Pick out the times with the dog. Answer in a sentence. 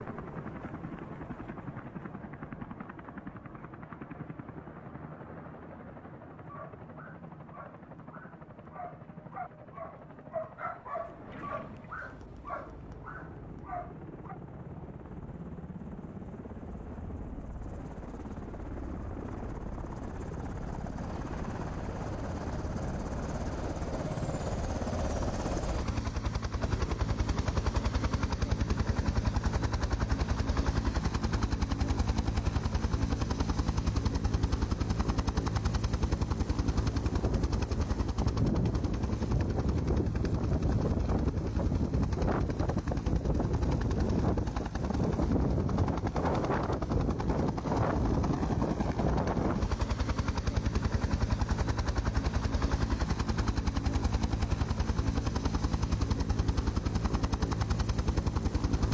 You can hear the dog from 6.3 to 14.4 s.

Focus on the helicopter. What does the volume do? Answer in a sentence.
The volume of the helicopter goes up.